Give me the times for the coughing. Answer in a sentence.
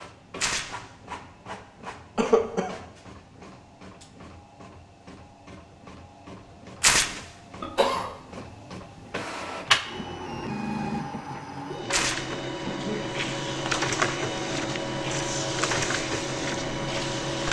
You can hear the coughing from 2.1 to 2.8 s, from 7.6 to 8.1 s and from 12.7 to 13.4 s.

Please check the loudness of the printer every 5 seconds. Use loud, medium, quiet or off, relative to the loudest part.
quiet, medium, loud, loud.